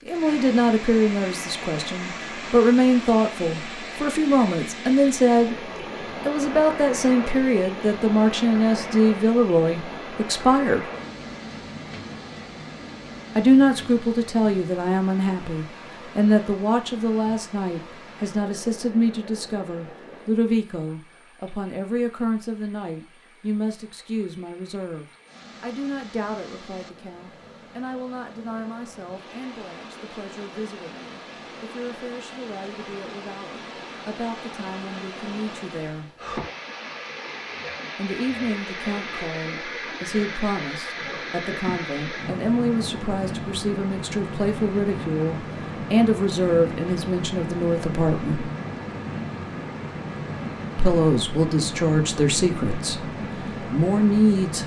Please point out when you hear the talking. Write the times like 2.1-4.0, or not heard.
0.1-5.5, 6.2-10.9, 13.3-36.1, 38.0-48.5, 50.8-54.6.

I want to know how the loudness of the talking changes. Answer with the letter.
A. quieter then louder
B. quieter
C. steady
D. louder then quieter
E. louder
A.